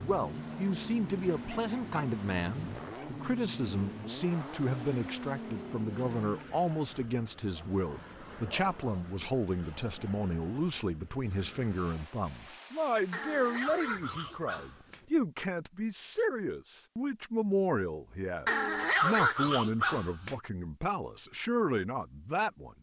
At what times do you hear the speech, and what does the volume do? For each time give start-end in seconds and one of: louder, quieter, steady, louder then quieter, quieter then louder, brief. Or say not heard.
0.0-22.7 steady.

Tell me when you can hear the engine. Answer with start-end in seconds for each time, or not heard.
0.0-6.5.